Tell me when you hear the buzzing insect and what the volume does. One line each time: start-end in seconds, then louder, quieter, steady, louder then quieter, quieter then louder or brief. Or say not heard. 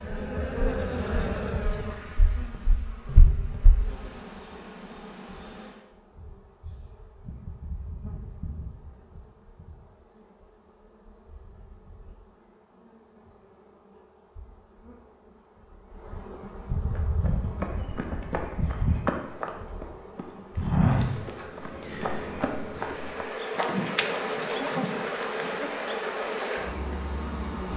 0.0-27.7 quieter then louder.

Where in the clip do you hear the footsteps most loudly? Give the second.
21 s.